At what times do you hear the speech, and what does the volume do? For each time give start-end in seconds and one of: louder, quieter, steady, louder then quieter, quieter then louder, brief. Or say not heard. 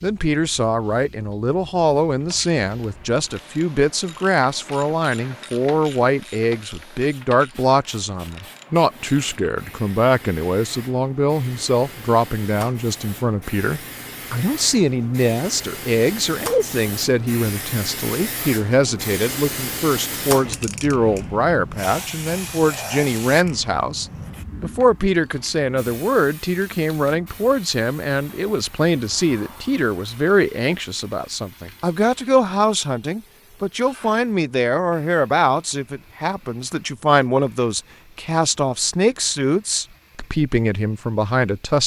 0.0-41.8 steady.